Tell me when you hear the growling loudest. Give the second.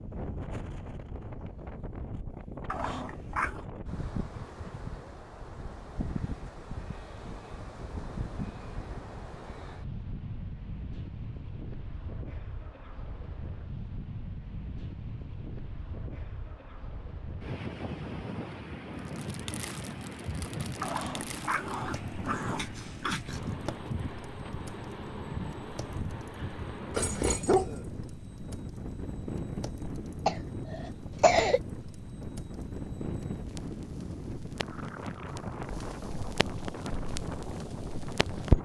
27 s.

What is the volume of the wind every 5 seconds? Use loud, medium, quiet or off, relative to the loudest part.
loud, loud, medium, loud, loud, loud, loud, loud.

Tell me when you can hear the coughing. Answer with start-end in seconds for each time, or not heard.
30.2-31.6.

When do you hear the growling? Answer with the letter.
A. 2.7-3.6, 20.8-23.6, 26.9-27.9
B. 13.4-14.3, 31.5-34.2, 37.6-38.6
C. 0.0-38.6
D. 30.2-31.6
A.